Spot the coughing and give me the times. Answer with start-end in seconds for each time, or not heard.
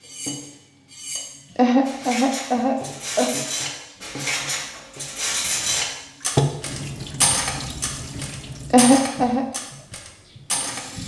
1.6-3.3, 8.7-9.4.